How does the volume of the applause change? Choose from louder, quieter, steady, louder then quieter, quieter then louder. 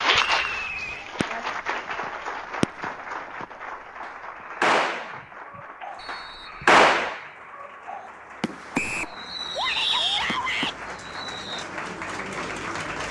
quieter then louder.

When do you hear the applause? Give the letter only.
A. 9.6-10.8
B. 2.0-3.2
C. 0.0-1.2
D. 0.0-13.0
D.